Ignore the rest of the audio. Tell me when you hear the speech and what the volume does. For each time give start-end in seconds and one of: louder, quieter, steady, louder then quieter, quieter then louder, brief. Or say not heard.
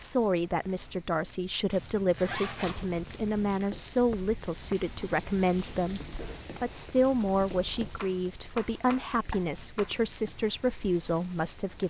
0.0-11.8 steady.